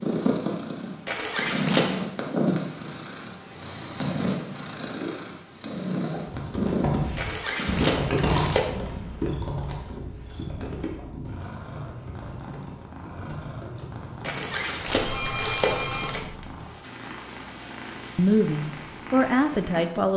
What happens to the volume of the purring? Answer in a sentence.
The loudness of the purring goes down.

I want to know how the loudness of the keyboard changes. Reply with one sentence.
The volume of the keyboard goes down.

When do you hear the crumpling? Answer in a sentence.
You can hear the crumpling from 1.1 to 1.9 s, from 7.2 to 8.7 s and from 14.2 to 16.2 s.